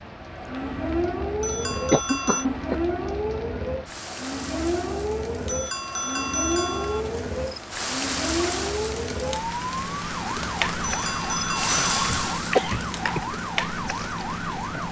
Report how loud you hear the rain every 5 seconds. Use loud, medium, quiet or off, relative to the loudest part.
medium, loud, loud.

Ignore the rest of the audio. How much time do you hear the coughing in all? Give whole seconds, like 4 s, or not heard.
2 s.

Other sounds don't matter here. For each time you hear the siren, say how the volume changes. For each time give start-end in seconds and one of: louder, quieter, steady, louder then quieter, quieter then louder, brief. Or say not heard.
0.0-14.8 steady.